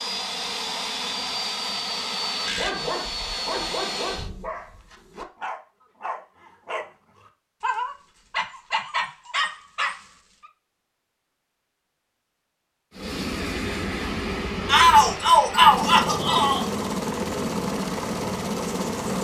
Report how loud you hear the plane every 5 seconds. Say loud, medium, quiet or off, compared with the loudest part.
loud, off, loud, loud.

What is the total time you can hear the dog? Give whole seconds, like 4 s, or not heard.
8 s.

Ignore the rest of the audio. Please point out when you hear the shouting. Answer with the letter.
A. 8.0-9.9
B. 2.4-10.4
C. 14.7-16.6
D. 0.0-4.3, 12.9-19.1
C.